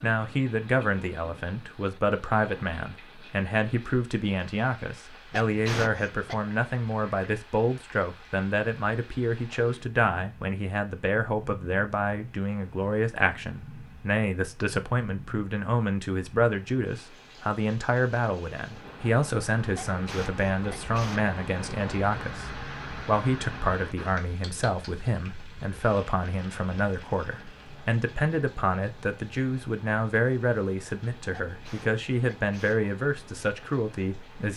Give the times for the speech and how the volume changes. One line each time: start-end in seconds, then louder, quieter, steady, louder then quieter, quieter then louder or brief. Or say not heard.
0.0-34.5 steady.